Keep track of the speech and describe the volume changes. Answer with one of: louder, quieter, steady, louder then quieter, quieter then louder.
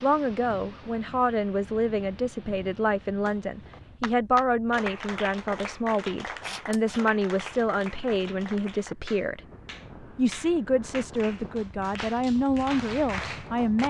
steady.